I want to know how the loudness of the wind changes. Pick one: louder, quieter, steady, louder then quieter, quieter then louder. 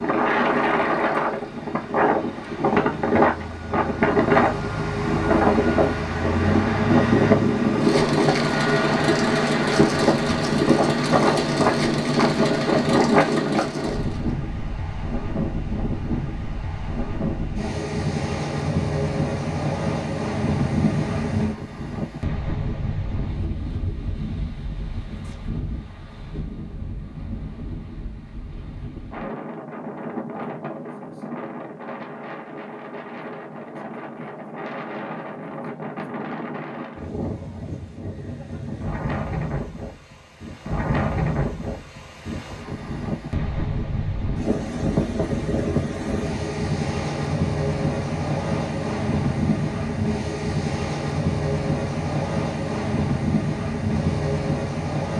quieter then louder.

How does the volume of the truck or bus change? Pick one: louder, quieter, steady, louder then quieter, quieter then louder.
louder.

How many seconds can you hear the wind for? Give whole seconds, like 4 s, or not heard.
55 s.